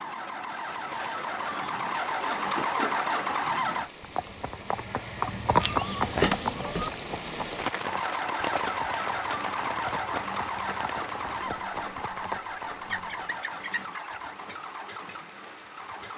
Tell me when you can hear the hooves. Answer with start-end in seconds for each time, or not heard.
3.7-12.4.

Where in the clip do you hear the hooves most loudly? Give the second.
6 s.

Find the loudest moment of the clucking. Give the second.
6 s.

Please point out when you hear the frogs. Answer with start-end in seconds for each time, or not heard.
not heard.